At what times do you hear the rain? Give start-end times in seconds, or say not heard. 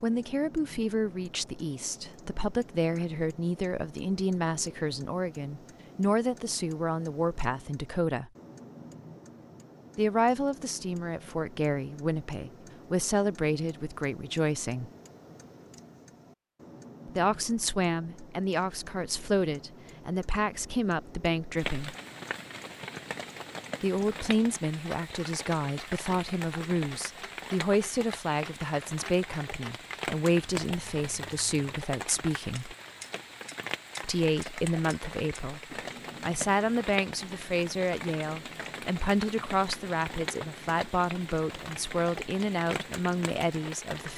21.6-44.1.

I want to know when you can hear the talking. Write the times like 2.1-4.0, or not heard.
0.0-8.3, 9.9-14.9, 17.1-21.9, 23.8-32.8, 34.0-35.6, 36.2-44.1.